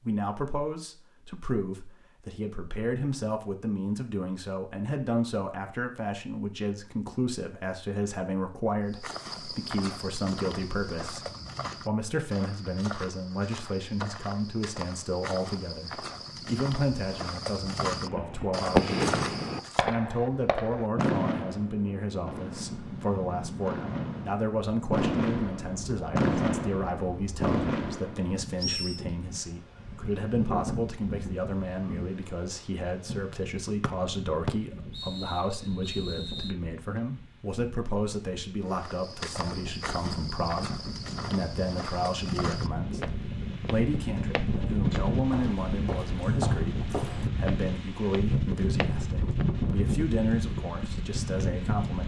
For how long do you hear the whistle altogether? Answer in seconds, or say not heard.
3 s.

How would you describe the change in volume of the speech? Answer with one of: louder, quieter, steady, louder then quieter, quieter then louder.
steady.